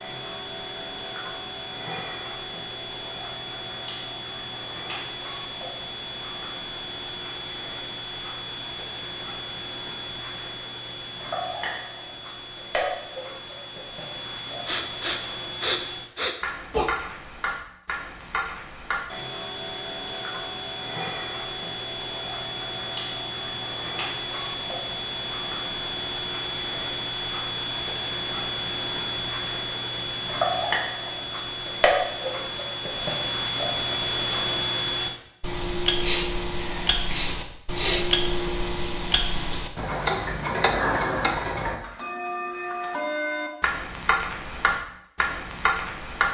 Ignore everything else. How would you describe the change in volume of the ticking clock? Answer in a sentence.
The loudness of the ticking clock goes up.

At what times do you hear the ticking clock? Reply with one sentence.
The ticking clock can be heard from 0.0 to 46.2 s.